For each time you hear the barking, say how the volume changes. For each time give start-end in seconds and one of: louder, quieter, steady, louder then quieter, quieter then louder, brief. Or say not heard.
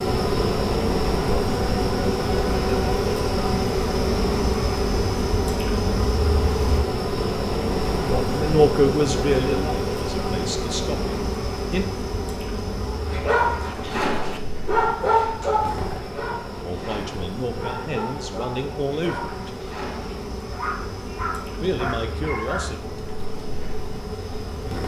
12.8-22.9 quieter.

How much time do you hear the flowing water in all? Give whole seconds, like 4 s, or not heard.
not heard.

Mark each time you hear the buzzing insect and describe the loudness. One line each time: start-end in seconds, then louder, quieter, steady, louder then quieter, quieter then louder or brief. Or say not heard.
0.0-24.8 quieter.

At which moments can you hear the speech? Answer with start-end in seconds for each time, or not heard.
8.1-11.9, 16.6-19.5, 21.6-22.8.